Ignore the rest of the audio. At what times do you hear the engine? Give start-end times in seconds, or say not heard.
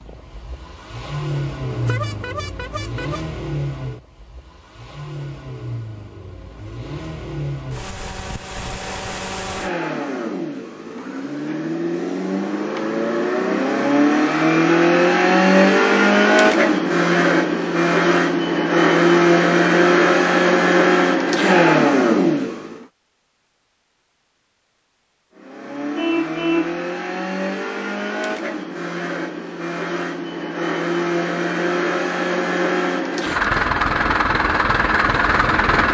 0.0-22.8, 25.4-35.8.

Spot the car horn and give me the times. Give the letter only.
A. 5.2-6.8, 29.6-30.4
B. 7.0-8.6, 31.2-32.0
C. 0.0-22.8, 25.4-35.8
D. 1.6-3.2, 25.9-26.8
D.